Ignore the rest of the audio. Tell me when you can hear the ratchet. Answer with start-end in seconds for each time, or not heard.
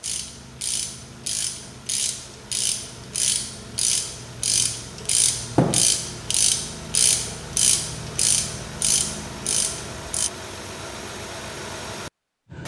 0.0-10.3.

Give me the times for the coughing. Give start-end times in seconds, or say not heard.
not heard.